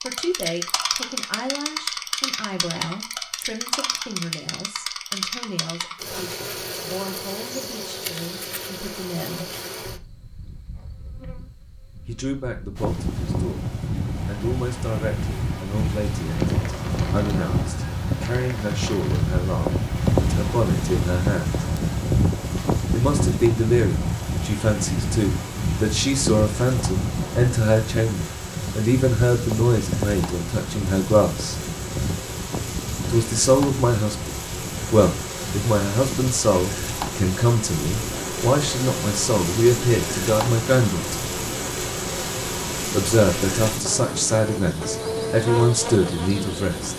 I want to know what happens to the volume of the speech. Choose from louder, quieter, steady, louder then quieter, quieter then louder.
louder.